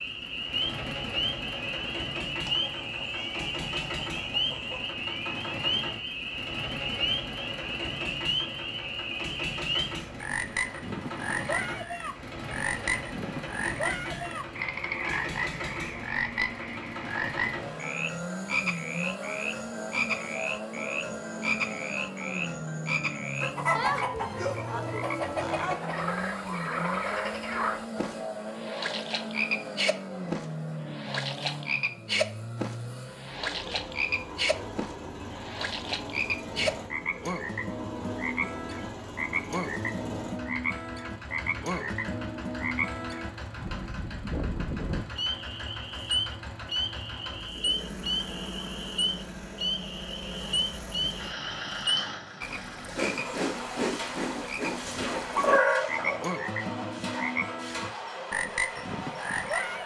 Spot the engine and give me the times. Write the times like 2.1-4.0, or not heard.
0.0-59.8.